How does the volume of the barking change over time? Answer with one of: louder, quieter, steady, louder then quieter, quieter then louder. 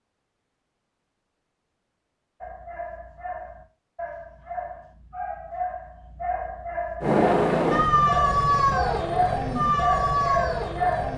louder.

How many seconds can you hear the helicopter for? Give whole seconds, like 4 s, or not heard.
4 s.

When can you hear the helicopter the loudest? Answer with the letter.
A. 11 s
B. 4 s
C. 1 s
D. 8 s
D.